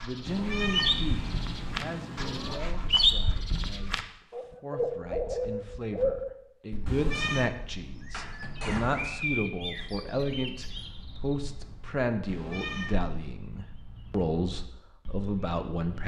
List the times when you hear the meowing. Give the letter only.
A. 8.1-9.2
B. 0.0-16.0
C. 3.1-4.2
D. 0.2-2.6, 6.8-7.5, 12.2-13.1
D.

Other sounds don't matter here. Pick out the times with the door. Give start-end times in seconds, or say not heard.
8.1-9.2.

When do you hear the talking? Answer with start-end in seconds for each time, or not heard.
0.0-16.0.